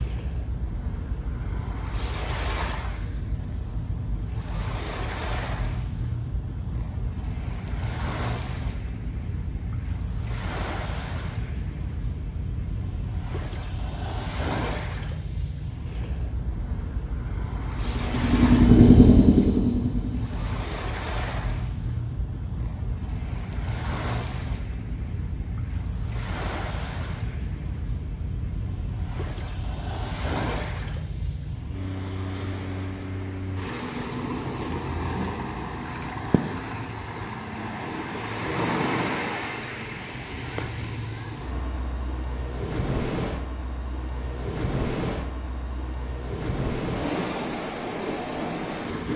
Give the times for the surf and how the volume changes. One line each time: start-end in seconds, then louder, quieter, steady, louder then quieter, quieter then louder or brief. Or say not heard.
0.0-49.1 steady.